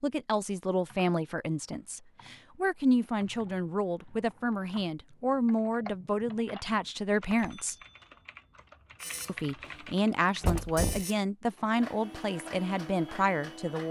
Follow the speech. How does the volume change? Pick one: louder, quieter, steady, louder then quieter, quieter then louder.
steady.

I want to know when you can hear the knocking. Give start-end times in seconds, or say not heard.
10.4-11.1.